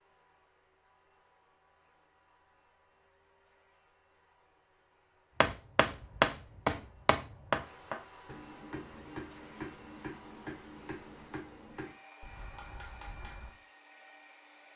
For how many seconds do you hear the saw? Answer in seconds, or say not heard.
not heard.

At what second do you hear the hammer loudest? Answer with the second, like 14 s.
6 s.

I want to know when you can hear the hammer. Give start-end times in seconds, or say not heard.
5.4-13.6.